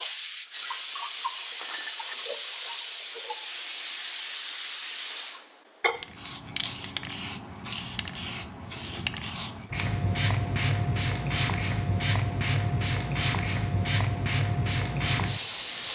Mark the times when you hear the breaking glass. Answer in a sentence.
You can hear the breaking glass from 1.6 to 2.1 s.